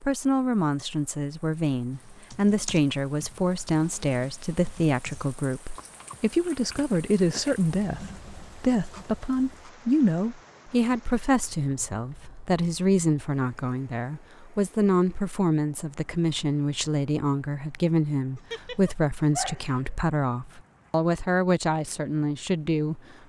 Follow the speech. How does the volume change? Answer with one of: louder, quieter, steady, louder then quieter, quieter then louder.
steady.